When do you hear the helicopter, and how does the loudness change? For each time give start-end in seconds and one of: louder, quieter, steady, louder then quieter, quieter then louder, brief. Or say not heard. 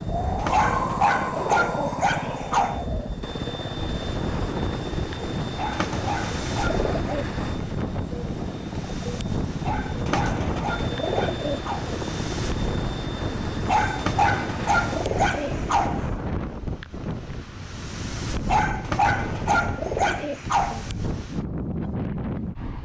0.0-15.8 steady.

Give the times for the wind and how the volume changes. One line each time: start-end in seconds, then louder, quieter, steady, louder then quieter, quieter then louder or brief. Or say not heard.
0.0-22.7 steady.